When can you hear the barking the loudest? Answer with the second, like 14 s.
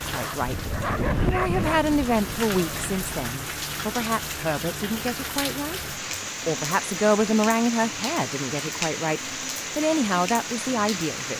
1 s.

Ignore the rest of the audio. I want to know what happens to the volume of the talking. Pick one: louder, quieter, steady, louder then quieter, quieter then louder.
steady.